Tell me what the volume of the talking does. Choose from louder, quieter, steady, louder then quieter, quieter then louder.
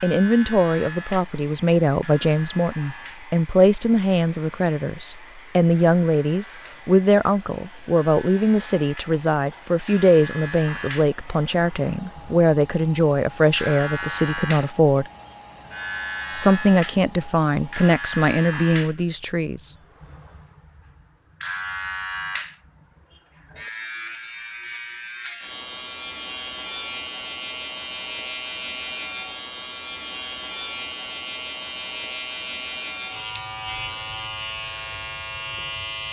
steady.